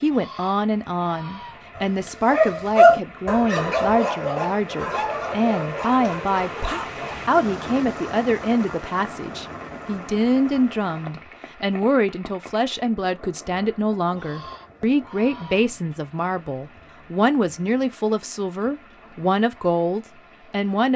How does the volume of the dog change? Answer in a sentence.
The loudness of the dog goes down.